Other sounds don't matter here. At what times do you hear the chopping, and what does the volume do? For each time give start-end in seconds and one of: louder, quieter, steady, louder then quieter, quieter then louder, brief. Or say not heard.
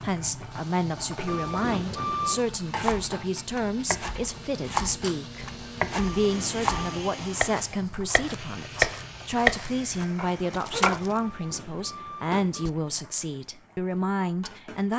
2.6-11.0 louder.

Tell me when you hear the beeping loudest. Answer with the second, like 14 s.
2 s.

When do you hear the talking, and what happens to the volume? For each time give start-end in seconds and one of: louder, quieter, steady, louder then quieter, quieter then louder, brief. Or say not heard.
0.0-14.9 steady.